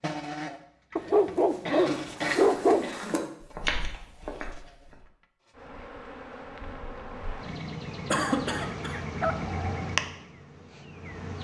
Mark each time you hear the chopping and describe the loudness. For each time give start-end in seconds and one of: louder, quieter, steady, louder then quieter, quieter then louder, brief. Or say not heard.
not heard.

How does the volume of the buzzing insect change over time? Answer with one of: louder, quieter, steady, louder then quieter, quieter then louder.
quieter then louder.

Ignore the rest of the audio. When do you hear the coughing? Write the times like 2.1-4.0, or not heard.
0.9-3.2, 8.1-9.0.